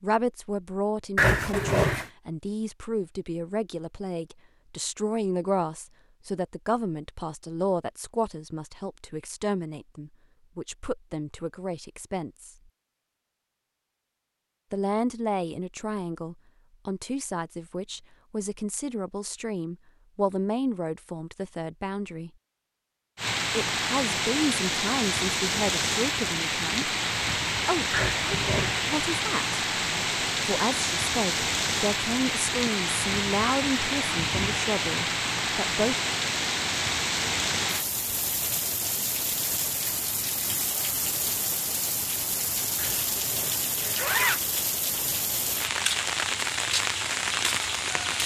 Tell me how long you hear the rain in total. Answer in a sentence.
You can hear the rain for 25 seconds altogether.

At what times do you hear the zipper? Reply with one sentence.
You can hear the zipper from 1.1 to 2.0 s, from 27.9 to 29.0 s and from 42.8 to 44.4 s.